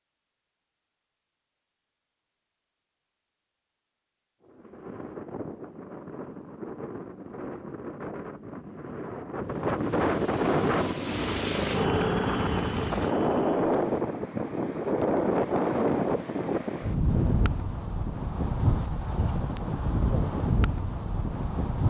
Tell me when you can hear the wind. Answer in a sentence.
You can hear the wind from 4.4 to 21.8 s.